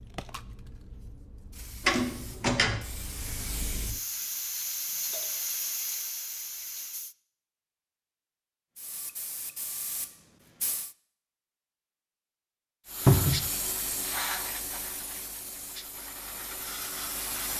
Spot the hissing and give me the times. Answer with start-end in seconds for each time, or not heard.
0.0-7.2, 8.8-10.9, 12.8-17.5.